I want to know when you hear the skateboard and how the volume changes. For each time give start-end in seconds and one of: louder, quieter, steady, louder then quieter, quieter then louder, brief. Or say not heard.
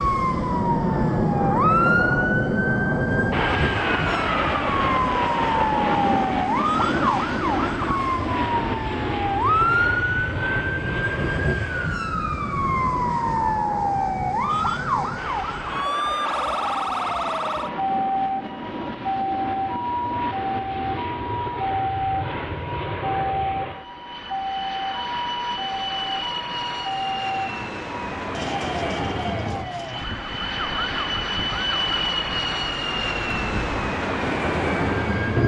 not heard.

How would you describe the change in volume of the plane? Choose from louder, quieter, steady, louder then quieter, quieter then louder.
quieter then louder.